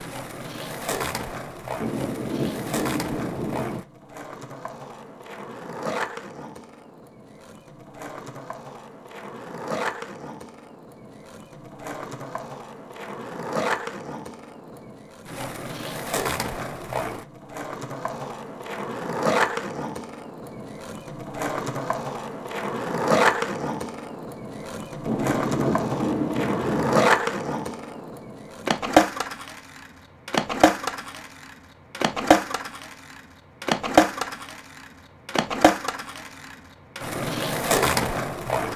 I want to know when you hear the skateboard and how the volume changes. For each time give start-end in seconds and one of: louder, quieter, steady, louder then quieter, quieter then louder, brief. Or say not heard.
0.0-38.7 louder.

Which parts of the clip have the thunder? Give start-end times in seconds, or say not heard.
1.8-3.8, 25.1-27.1.